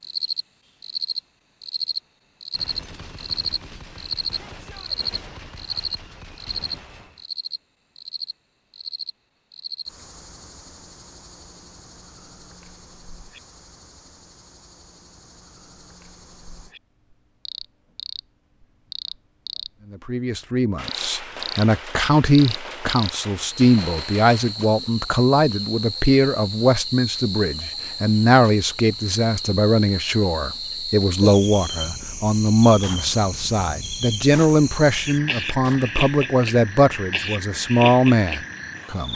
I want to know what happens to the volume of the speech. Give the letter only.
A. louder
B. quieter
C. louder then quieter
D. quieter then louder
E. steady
E.